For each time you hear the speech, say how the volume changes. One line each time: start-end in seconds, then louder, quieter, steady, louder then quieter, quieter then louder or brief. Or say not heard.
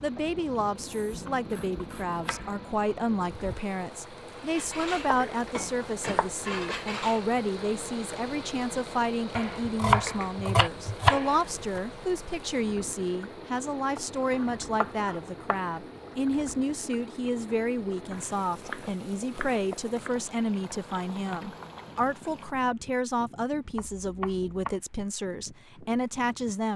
0.0-26.7 steady.